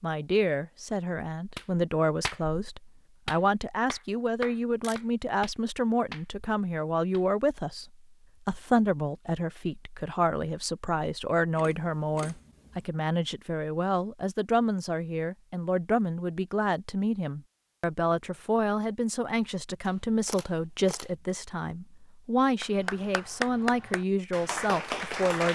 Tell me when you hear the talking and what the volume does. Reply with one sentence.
You can hear the talking from 0.0 to 25.4 s, at a steady volume.